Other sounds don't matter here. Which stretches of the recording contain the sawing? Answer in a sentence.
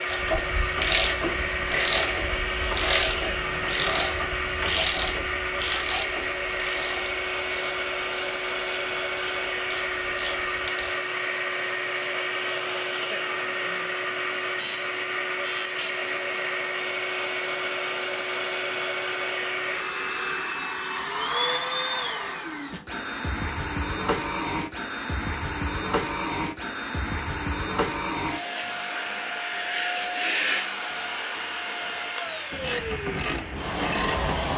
You can't hear the sawing here.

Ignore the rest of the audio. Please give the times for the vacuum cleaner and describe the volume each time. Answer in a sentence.
You can hear the vacuum cleaner from 0.0 to 34.5 s, at a steady volume.